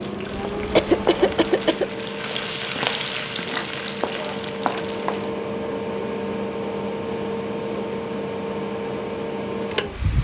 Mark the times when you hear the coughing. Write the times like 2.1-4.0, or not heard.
0.8-2.0.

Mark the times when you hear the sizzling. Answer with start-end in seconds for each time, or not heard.
0.0-5.3.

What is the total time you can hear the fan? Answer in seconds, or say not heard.
10 s.